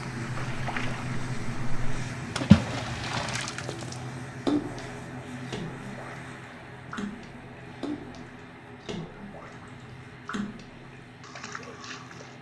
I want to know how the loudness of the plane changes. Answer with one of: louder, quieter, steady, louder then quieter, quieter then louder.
quieter.